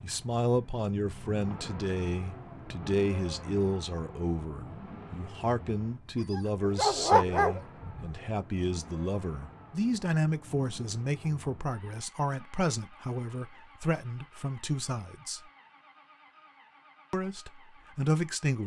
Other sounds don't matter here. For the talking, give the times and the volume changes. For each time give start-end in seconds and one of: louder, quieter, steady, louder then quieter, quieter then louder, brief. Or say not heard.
0.0-15.4 steady
17.1-18.6 brief.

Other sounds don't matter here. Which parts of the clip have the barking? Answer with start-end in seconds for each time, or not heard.
6.3-8.2.